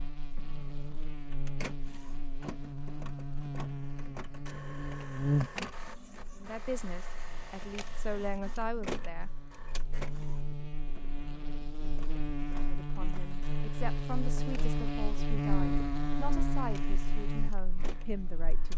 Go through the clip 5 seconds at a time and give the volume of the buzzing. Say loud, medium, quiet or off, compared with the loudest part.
medium, loud, loud, loud.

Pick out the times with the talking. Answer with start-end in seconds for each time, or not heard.
6.3-9.3, 12.7-18.7.